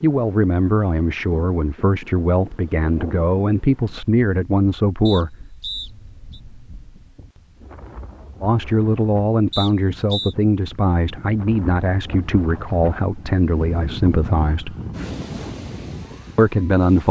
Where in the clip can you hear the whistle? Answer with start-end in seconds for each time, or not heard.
5.0-6.4, 9.5-10.3.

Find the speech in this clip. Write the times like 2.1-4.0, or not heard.
0.0-5.3, 8.4-14.8, 16.4-17.0.